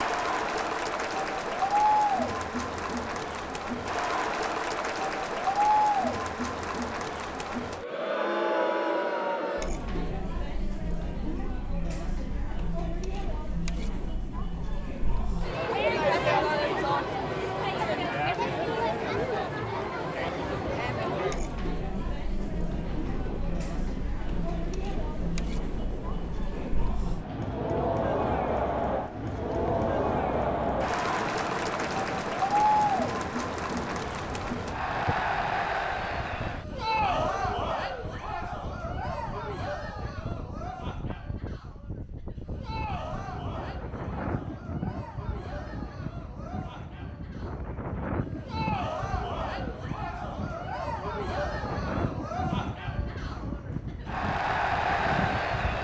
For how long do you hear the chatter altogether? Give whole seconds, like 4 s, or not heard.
56 s.